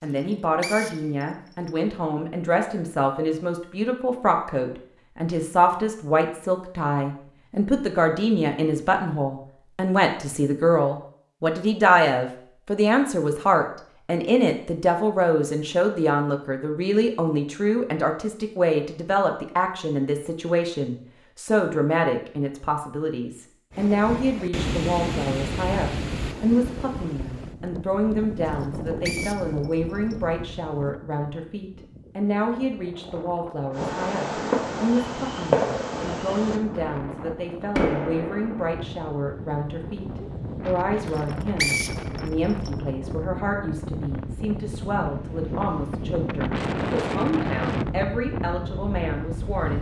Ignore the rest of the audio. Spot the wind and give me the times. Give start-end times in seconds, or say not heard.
23.7-49.7.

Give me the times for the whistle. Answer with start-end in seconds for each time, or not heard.
0.1-1.7, 28.5-30.1, 41.0-42.7.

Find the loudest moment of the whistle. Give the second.
42 s.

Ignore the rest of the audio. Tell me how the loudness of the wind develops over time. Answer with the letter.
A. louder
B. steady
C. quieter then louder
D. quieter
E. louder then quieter
C.